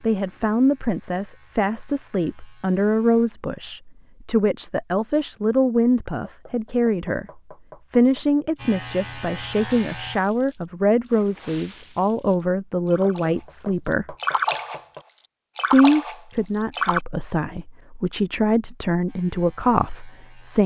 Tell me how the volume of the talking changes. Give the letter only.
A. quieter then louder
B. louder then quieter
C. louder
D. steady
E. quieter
D.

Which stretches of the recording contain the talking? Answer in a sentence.
The talking can be heard from 0.0 to 14.2 s and from 15.7 to 20.6 s.